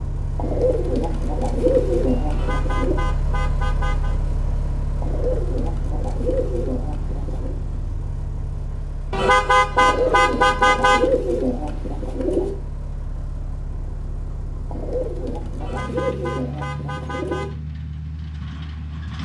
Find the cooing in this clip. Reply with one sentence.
You can hear the cooing from 0.3 to 3.0 s, from 5.0 to 7.5 s, from 9.8 to 12.6 s and from 14.7 to 17.5 s.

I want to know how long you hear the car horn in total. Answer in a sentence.
You can hear the car horn for 6 seconds altogether.